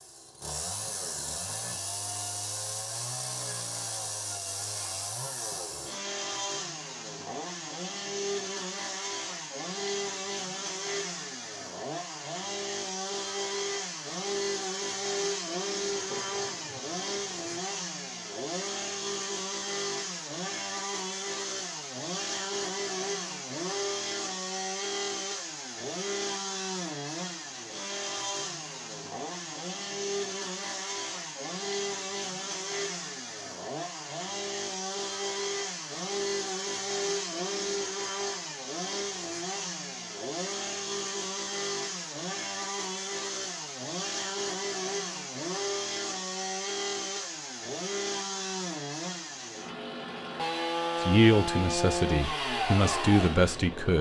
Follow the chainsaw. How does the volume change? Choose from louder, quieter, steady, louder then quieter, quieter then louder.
steady.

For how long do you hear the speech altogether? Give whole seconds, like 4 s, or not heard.
3 s.